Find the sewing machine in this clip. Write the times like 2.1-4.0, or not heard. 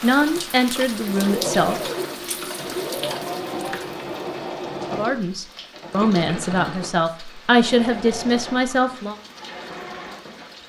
0.0-10.6.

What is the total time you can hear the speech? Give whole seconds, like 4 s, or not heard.
6 s.